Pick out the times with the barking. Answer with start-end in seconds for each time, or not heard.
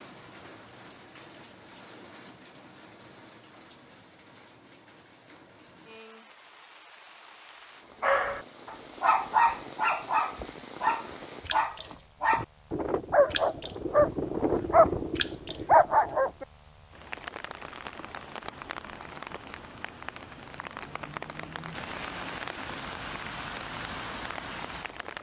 8.0-16.4.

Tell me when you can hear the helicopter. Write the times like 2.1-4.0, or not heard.
not heard.